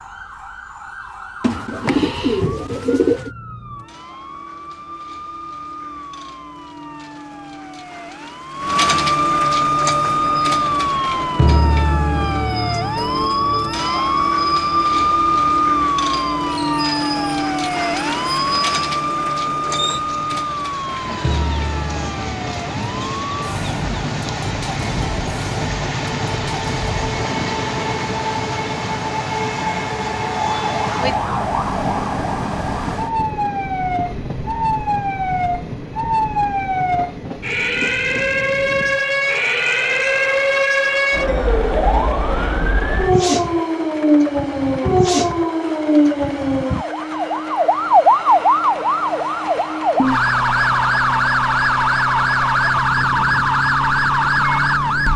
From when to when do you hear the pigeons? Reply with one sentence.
You can hear the pigeons from 1.4 to 3.3 s.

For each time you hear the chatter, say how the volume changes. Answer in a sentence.
You can't hear the chatter here.